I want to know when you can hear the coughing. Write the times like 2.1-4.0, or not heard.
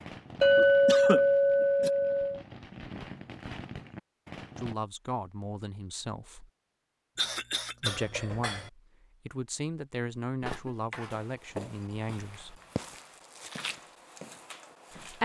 0.6-1.9, 7.2-8.0, 10.4-11.2.